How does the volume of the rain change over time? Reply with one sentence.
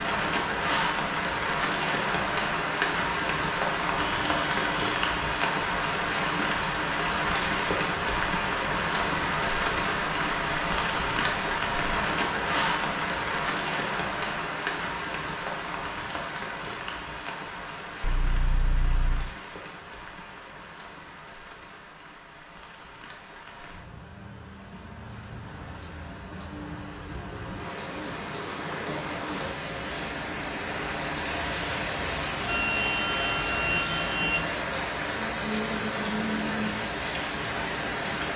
The volume of the rain goes down, then up.